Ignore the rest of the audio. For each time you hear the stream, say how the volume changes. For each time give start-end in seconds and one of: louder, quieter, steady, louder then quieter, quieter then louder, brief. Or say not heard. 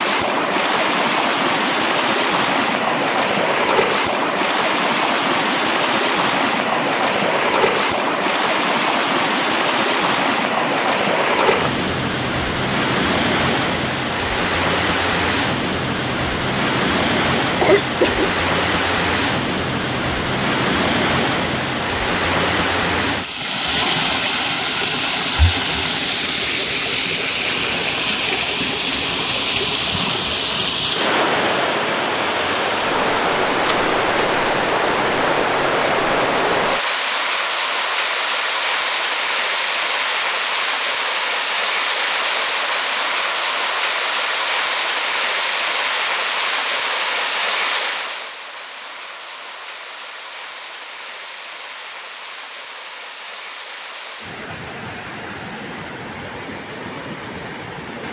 0.0-58.0 quieter.